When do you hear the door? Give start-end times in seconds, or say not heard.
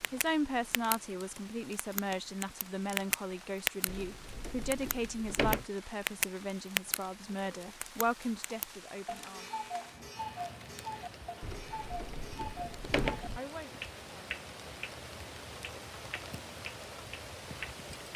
3.9-5.7, 11.4-13.4.